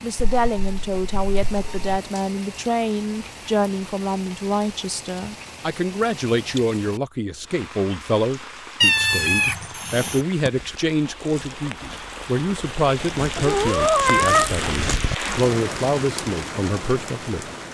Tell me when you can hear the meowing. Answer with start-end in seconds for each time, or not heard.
0.1-2.0, 8.8-10.2, 13.3-14.5.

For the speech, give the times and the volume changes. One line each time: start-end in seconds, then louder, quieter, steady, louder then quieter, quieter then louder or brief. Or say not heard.
0.0-17.4 steady.